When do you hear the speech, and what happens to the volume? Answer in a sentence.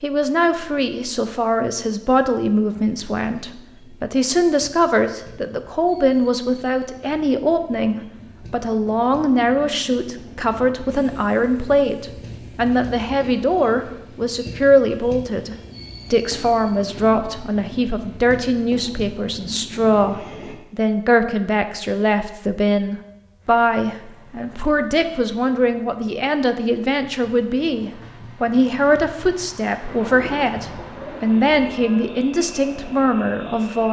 You can hear the speech from 0.0 to 33.8 s, at a steady volume.